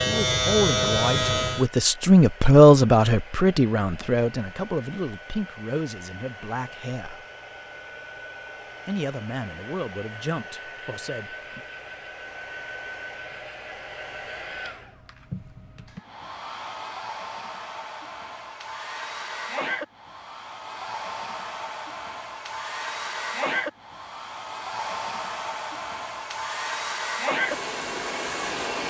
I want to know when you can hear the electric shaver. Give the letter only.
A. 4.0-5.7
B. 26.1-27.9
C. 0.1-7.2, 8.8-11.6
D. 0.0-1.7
D.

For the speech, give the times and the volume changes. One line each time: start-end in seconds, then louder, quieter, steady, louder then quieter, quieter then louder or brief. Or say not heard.
0.1-7.2 louder then quieter
8.8-11.6 brief.